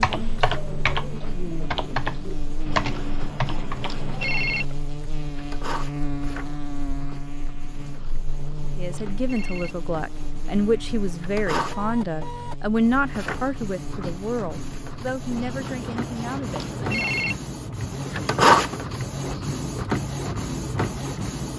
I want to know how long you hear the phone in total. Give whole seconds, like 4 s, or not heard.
6 s.